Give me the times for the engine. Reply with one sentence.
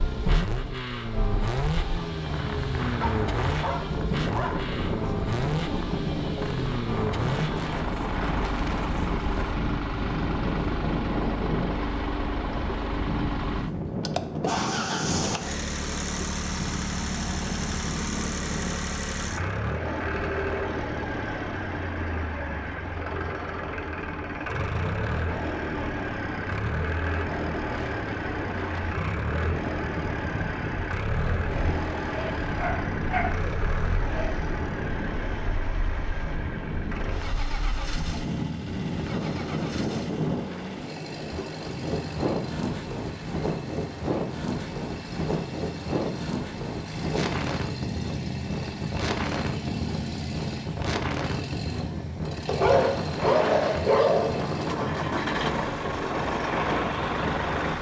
The engine can be heard from 0.0 to 57.7 s.